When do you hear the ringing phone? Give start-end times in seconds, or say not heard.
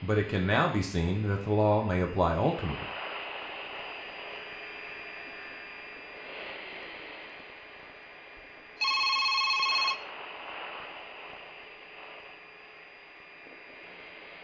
8.8-9.9.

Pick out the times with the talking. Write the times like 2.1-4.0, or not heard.
0.0-2.9.